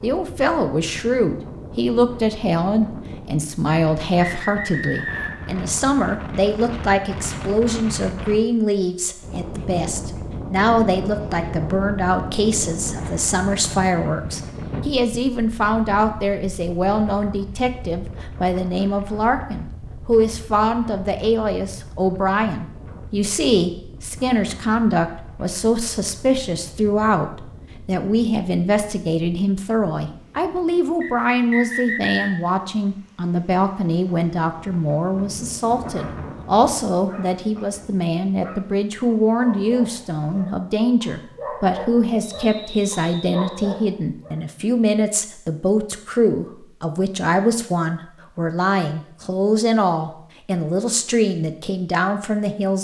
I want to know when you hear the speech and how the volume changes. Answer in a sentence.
The speech can be heard from 0.0 to 52.8 s, at a steady volume.